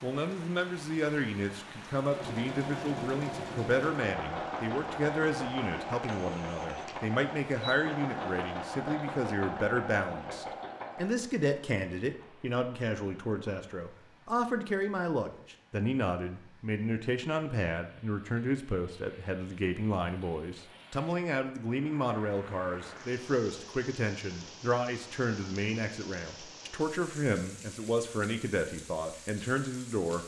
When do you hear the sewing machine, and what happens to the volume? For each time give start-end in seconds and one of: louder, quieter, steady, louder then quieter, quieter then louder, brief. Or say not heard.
2.0-11.1 steady.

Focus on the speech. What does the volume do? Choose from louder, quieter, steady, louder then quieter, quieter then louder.
steady.